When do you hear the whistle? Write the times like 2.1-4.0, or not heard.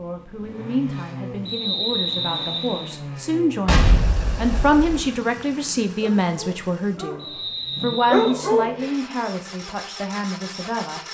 1.4-3.0, 7.2-8.3.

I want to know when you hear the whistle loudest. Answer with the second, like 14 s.
2 s.